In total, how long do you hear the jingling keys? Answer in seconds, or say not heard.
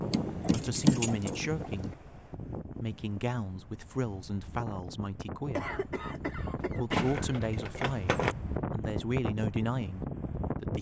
3 s.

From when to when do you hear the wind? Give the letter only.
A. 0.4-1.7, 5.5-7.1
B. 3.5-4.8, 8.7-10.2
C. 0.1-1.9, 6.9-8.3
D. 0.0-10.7
D.